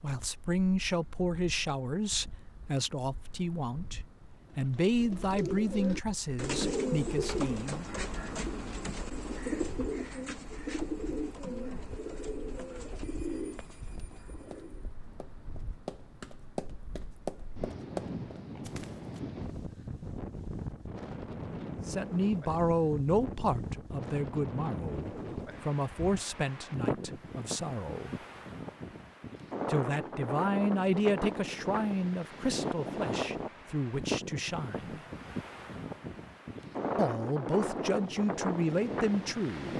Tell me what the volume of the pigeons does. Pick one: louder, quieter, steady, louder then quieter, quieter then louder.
quieter.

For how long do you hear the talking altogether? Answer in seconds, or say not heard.
22 s.